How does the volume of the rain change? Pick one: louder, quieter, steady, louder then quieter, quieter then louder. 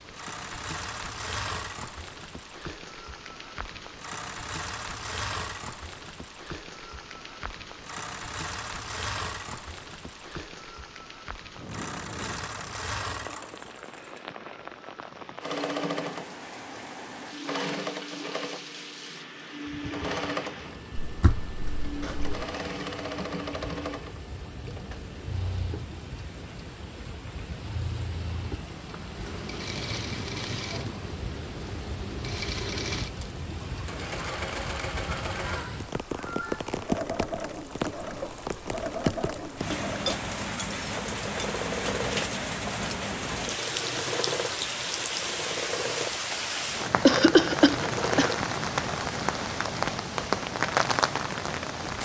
louder.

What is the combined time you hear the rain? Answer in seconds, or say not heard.
52 s.